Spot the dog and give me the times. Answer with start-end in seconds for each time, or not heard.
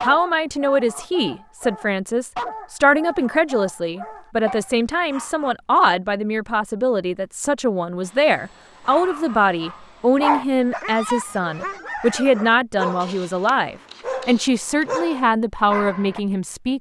0.0-5.5, 8.8-16.2.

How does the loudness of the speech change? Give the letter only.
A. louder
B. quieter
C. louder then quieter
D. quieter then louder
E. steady
E.